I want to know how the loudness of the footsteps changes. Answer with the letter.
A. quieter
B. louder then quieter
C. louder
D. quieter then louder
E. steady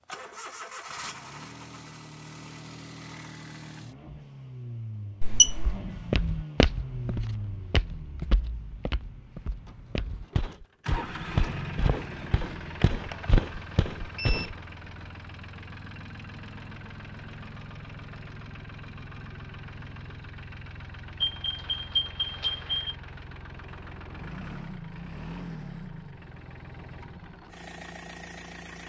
D.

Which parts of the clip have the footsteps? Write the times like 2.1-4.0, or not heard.
5.6-14.6.